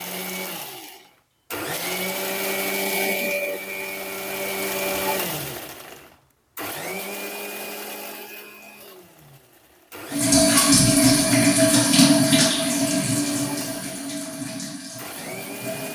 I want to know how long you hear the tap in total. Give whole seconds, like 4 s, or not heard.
6 s.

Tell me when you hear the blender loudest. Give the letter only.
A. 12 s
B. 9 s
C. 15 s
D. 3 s
D.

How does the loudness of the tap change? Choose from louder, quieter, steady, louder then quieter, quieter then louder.
quieter.